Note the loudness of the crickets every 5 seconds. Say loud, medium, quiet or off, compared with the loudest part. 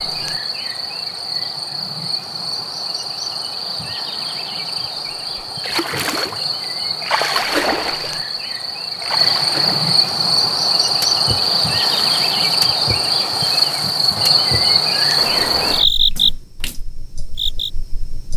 medium, medium, loud, loud.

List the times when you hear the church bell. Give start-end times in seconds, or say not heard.
not heard.